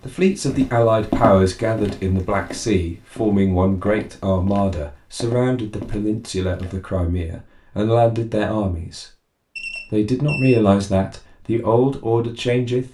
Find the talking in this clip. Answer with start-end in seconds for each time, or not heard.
0.1-9.1, 9.9-12.8.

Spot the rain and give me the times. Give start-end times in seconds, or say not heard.
not heard.